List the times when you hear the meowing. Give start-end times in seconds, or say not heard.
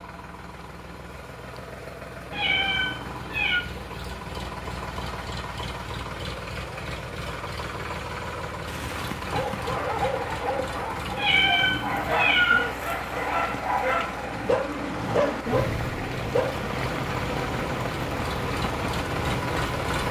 2.3-3.6, 11.2-12.7.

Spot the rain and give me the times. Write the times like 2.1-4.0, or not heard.
8.7-20.0.